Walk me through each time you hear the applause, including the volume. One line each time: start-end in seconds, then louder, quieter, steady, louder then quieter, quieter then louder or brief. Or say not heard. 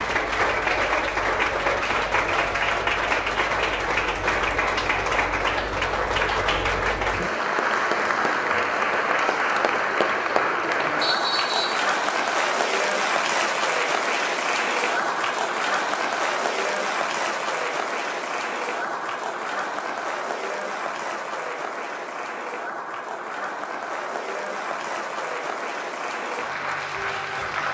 0.0-27.6 quieter.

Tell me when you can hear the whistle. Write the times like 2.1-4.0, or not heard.
11.0-11.8.